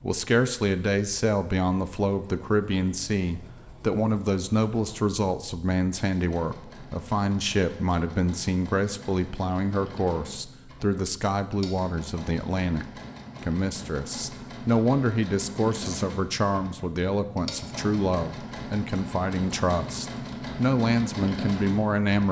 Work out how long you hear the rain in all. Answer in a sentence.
The rain can't be heard in this clip.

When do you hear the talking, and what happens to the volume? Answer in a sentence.
You can hear the talking from 0.0 to 22.2 s, at a steady volume.